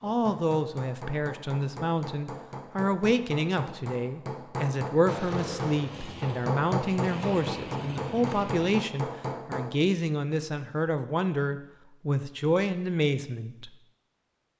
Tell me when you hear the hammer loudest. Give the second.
7 s.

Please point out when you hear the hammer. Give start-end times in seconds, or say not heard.
0.0-9.8.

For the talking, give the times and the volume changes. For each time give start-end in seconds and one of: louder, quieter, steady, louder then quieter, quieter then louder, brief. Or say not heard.
0.0-13.7 steady.